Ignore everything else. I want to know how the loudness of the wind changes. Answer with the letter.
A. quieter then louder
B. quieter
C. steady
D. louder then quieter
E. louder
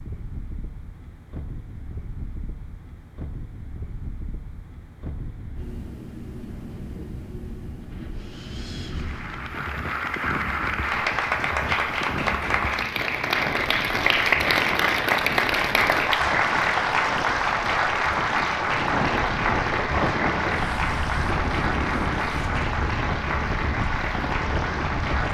E.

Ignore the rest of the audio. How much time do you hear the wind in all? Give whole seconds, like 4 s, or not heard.
25 s.